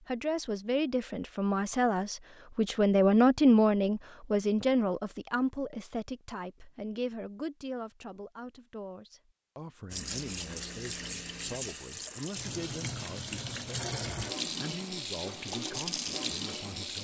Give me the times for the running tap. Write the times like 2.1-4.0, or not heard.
9.9-17.0.